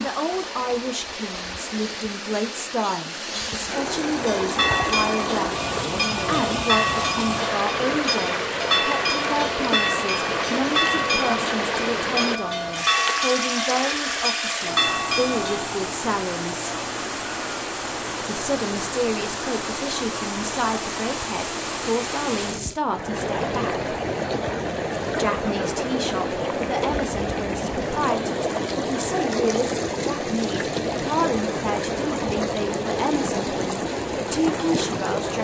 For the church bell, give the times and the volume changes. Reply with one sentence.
You can hear the church bell from 4.2 to 15.7 s, at a steady volume.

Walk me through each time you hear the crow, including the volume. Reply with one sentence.
You can't hear the crow here.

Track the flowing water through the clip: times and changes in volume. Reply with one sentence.
You can hear the flowing water from 0.0 to 35.3 s, at a steady volume.